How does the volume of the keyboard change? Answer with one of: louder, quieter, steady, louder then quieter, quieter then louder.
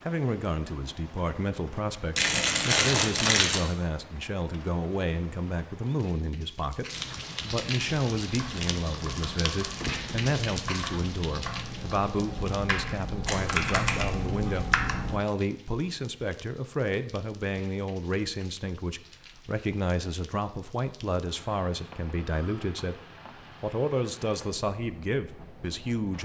louder.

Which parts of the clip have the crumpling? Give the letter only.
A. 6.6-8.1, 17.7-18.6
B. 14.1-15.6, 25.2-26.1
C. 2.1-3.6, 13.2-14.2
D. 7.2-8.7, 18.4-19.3
C.